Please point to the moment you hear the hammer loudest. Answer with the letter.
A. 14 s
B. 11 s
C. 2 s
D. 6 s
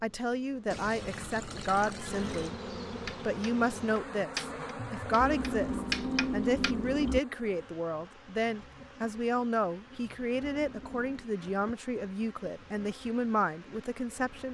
D.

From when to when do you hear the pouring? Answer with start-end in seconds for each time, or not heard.
0.7-2.5, 5.2-7.2, 10.4-11.3.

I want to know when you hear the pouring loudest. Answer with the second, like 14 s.
6 s.